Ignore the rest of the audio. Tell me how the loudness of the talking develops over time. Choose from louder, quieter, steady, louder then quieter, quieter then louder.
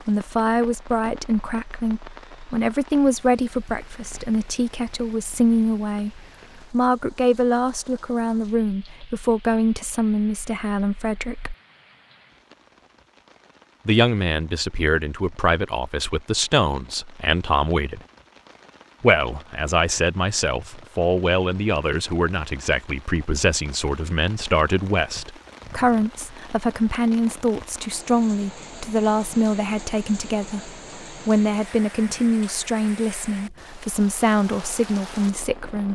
steady.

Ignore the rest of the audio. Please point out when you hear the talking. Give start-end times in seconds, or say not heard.
0.1-11.6, 13.8-18.0, 19.0-35.9.